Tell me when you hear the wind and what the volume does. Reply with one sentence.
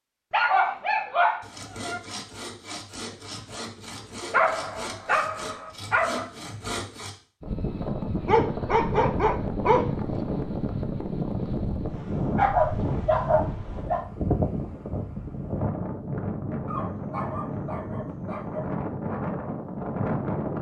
You can hear the wind from 7.4 to 20.5 s, at a steady volume.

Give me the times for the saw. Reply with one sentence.
The saw can be heard from 1.4 to 7.2 s.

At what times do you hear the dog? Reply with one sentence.
You can hear the dog from 0.3 to 2.0 s, from 4.3 to 6.2 s, from 8.2 to 10.2 s, from 12.3 to 14.1 s and from 16.6 to 18.7 s.